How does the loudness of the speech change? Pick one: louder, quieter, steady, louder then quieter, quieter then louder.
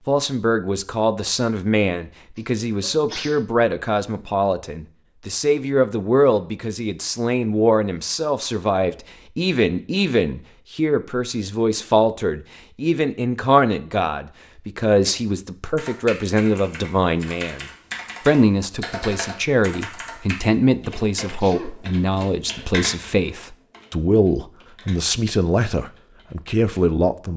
steady.